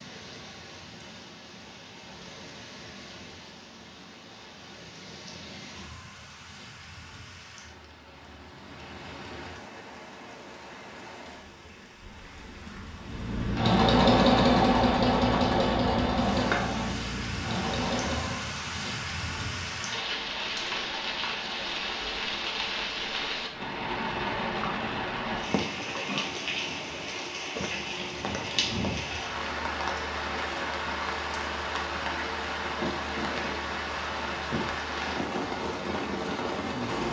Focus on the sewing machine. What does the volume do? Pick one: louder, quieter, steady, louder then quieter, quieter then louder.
quieter.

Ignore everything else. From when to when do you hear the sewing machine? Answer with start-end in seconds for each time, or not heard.
13.0-18.6.